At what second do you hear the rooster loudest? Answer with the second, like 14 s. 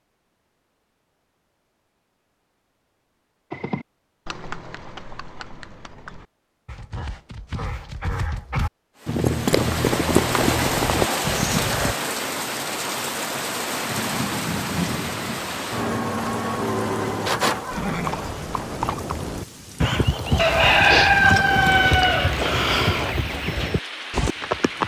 21 s.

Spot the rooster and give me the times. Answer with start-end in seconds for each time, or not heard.
20.4-22.4.